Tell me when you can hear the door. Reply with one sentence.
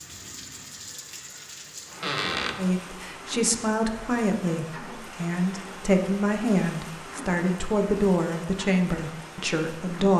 The door can be heard from 2.0 to 2.6 s.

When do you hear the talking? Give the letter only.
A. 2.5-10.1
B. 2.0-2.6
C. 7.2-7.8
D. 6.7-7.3
A.